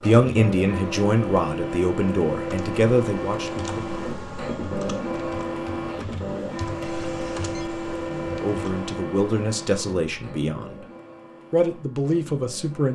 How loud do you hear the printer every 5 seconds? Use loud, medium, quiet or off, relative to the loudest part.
loud, loud, quiet.